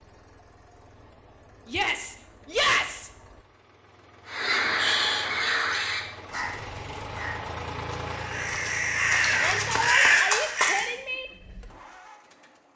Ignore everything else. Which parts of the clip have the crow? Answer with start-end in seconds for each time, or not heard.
4.2-10.9.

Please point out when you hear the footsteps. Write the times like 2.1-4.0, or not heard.
not heard.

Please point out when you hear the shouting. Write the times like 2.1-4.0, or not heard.
1.6-3.1, 9.2-11.2.